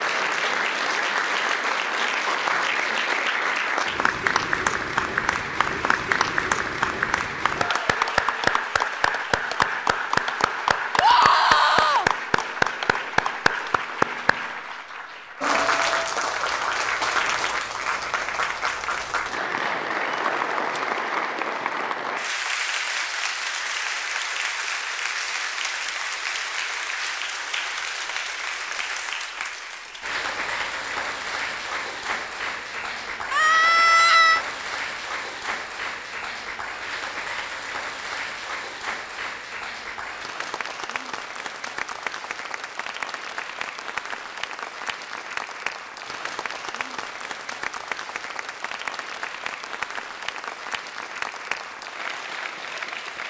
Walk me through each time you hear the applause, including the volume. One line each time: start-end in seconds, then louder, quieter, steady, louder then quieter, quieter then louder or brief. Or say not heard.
0.0-53.2 quieter.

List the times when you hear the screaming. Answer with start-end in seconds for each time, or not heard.
10.9-12.1, 33.3-34.5.